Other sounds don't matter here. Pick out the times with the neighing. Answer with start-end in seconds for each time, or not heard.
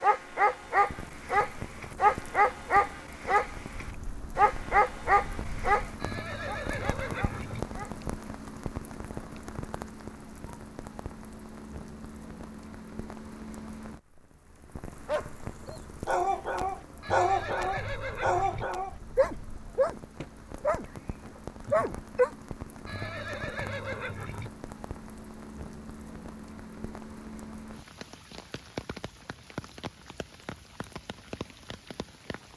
6.0-7.7, 17.0-18.6, 22.9-24.5.